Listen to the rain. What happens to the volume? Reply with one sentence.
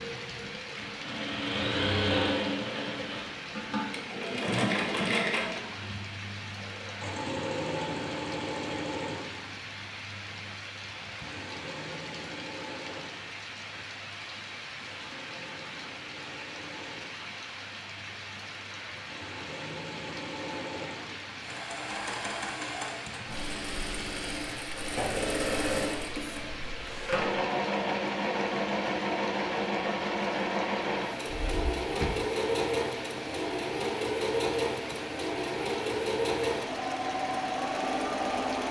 The loudness of the rain stays about the same.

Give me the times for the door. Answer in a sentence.
You can hear the door from 31.4 to 32.2 s.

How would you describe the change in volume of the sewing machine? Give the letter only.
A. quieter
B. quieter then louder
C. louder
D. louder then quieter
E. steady
B.